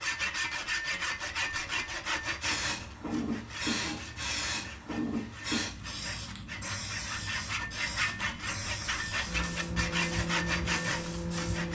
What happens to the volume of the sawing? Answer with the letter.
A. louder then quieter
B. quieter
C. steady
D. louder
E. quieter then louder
E.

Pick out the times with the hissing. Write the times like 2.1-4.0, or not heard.
2.4-11.7.